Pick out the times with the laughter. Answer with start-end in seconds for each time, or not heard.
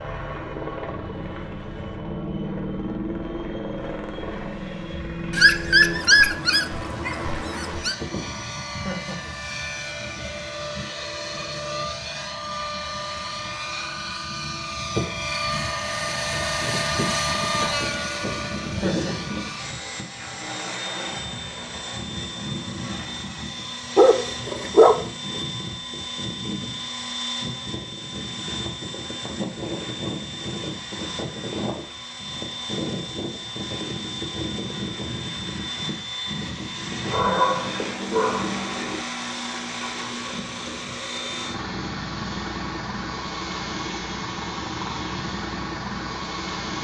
8.7-9.3, 18.6-19.3, 37.1-37.8.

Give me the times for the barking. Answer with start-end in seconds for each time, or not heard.
5.3-8.0, 23.9-25.4, 37.0-39.0.